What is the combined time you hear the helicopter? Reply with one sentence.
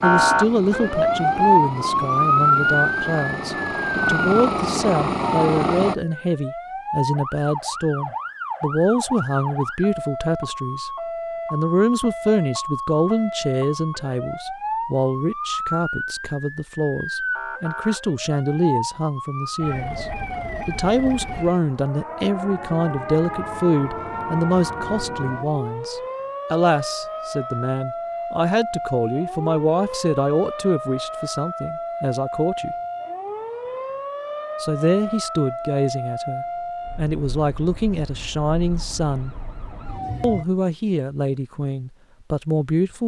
The helicopter can be heard for 6 seconds in total.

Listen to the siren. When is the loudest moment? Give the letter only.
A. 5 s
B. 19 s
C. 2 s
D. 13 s
C.